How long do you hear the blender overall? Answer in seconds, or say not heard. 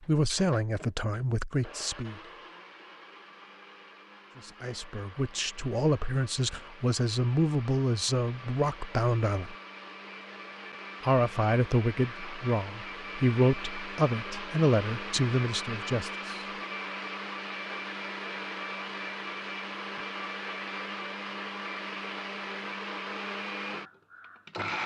25 s.